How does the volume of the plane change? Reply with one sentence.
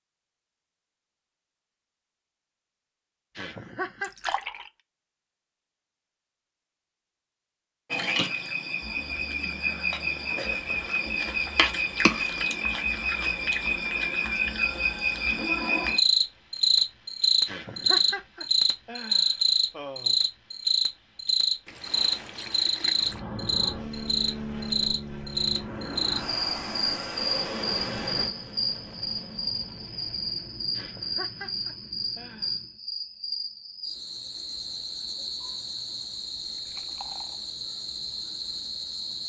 The loudness of the plane goes down.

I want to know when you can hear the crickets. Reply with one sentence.
You can hear the crickets from 7.9 to 39.2 s.